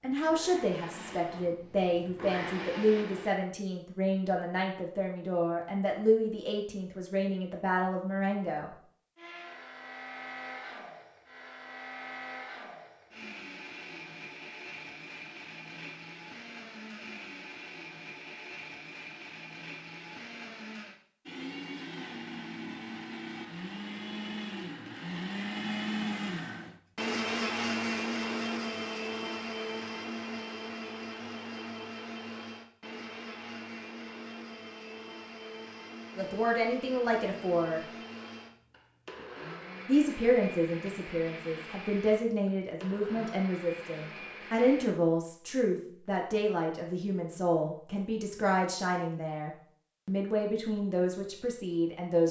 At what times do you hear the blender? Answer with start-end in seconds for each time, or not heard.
0.1-3.4, 9.2-44.9.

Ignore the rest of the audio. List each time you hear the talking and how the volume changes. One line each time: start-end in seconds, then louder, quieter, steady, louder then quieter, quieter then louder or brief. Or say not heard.
0.0-8.7 steady
36.1-37.8 brief
39.9-52.2 steady.